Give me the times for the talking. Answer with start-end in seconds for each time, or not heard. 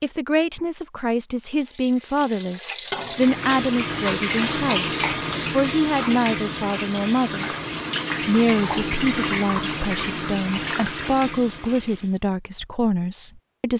0.0-7.5, 8.2-13.7.